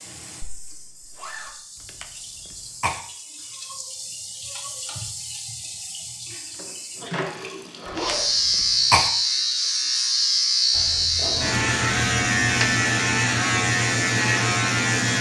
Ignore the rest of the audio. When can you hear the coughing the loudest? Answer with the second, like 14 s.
9 s.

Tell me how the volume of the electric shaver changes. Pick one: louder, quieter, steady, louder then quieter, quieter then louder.
steady.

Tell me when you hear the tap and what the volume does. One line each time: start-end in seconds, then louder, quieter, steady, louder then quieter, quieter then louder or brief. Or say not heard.
0.0-8.0 louder.